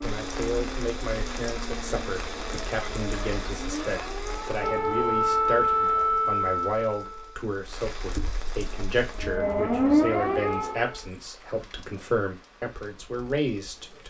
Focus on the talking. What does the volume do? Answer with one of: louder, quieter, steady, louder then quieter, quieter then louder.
steady.